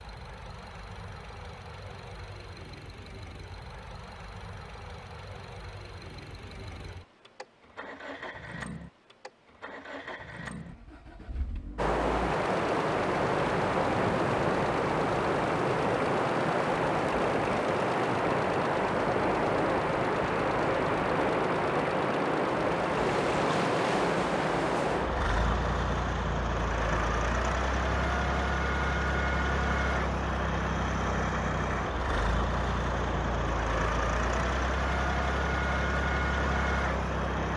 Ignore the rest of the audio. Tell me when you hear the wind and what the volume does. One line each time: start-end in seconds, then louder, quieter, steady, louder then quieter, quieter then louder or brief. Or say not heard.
11.8-37.5 quieter.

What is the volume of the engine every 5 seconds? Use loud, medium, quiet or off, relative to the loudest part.
quiet, quiet, medium, medium, medium, loud, loud, loud.